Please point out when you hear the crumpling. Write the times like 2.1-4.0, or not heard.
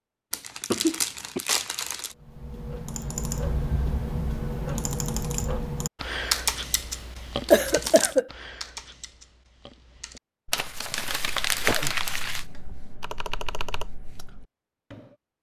0.3-2.1, 7.5-8.2, 10.5-12.4.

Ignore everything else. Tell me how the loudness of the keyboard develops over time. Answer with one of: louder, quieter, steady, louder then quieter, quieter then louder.
quieter then louder.